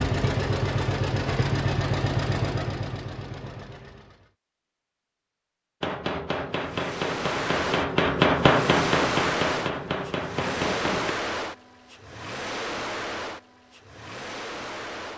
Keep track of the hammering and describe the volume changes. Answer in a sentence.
The volume of the hammering goes up, then down.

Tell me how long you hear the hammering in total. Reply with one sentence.
You can hear the hammering for 5 seconds altogether.